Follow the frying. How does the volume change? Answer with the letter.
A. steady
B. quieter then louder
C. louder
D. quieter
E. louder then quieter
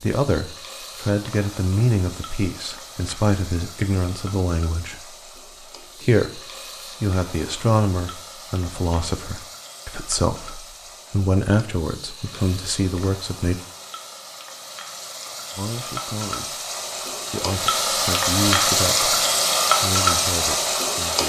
C.